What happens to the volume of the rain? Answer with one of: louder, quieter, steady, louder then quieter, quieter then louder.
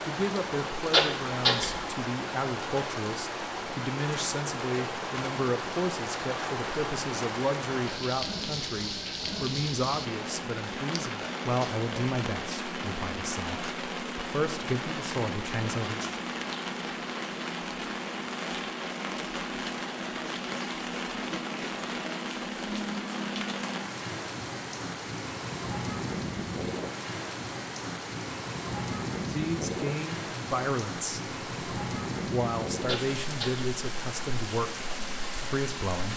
steady.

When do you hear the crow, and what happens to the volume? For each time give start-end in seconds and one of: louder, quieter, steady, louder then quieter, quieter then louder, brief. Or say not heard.
not heard.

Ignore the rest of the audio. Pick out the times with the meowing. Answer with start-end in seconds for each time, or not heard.
0.9-1.8, 32.9-33.6.